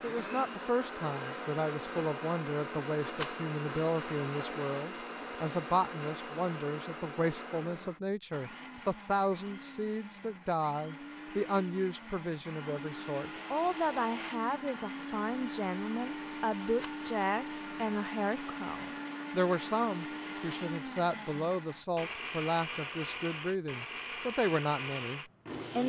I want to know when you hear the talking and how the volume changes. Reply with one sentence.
The talking can be heard from 0.0 to 25.8 s, at a steady volume.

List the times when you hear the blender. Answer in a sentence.
You can hear the blender from 0.0 to 25.8 s.